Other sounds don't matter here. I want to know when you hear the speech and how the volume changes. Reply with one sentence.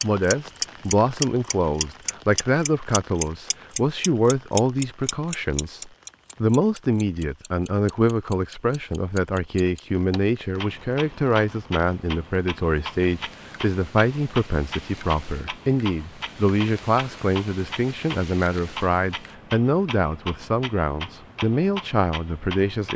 The speech can be heard from 0.0 to 22.9 s, at a steady volume.